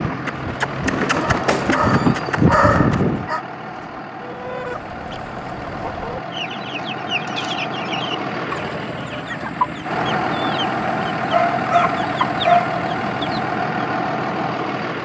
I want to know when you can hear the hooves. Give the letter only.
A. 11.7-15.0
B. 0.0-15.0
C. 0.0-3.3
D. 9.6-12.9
C.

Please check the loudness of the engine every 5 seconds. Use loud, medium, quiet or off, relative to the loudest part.
medium, medium, loud.